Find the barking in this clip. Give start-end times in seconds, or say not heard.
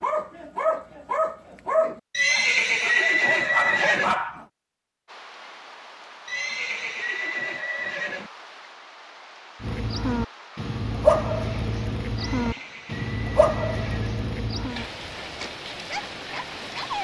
0.0-4.5, 9.6-17.0.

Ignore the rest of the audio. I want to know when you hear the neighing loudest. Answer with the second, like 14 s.
3 s.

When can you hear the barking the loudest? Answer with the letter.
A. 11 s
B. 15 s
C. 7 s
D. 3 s
A.